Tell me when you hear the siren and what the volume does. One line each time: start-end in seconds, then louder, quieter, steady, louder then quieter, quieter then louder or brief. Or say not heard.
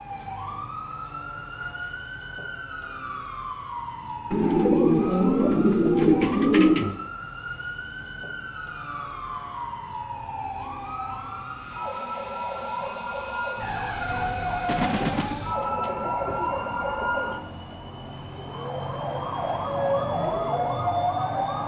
0.0-21.6 louder.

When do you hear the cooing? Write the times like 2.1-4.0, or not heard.
4.3-7.0, 14.7-17.3.